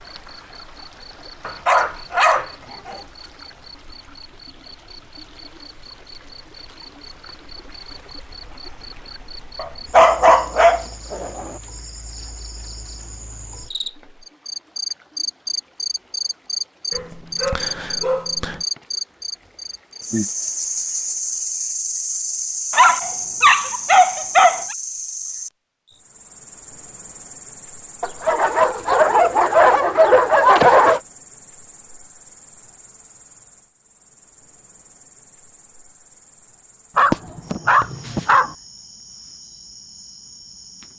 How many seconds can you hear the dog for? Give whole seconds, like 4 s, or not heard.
12 s.